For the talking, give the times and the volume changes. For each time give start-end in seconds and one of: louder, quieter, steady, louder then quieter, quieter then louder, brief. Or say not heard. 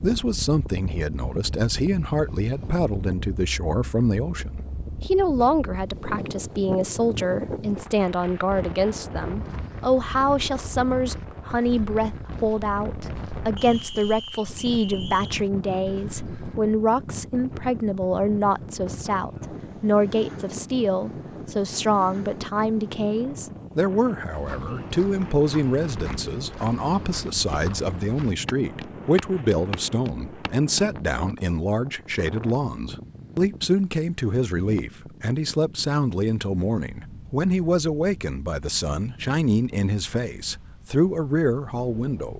0.0-42.3 steady.